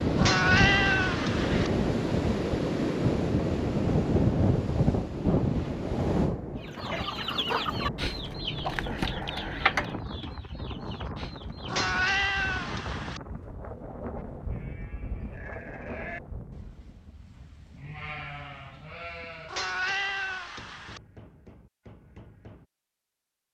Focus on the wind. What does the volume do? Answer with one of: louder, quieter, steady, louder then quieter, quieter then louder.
quieter.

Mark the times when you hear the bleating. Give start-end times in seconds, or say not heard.
14.2-22.6.